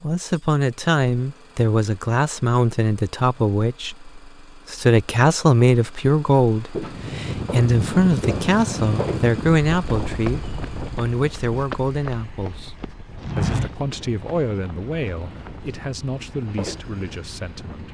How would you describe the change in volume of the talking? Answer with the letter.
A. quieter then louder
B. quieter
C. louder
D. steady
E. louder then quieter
B.